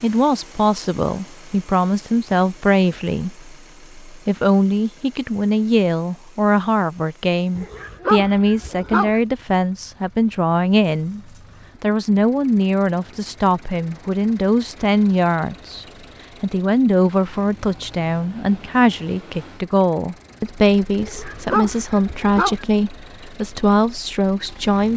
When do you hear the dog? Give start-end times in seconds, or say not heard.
7.5-9.2, 21.0-22.6.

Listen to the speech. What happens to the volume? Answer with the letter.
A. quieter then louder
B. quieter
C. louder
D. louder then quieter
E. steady
E.